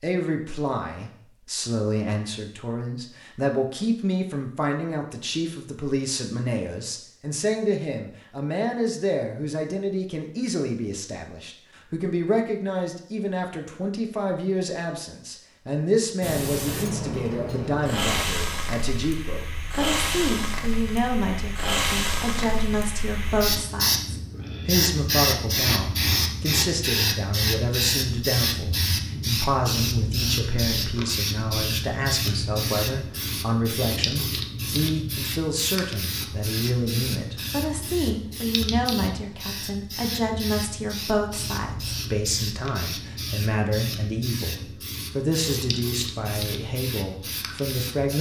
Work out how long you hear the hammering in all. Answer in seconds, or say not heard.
not heard.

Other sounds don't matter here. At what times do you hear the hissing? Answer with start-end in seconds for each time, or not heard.
16.2-48.1.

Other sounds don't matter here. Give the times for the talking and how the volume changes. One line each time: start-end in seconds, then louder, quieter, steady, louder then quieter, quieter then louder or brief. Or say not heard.
0.0-48.1 steady.